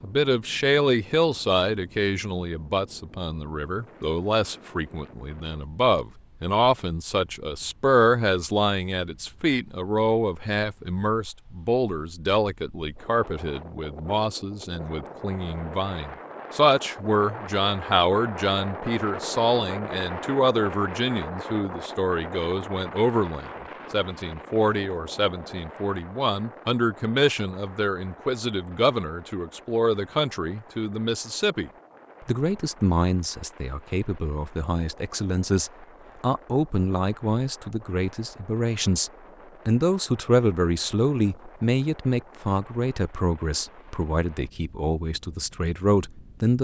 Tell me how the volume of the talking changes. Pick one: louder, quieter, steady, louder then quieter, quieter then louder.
steady.